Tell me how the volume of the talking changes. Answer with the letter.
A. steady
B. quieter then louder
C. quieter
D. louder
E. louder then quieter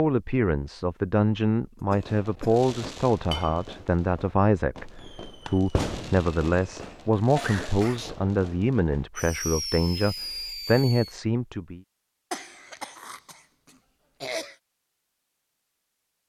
A.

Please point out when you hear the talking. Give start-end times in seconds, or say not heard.
0.0-11.8.